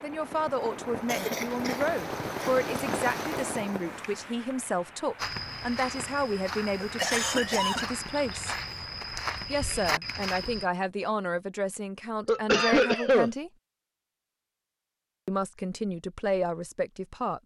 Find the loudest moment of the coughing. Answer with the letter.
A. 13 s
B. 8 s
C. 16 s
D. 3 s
A.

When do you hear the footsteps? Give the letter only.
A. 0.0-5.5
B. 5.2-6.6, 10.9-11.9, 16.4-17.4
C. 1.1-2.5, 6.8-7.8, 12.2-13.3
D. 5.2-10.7
D.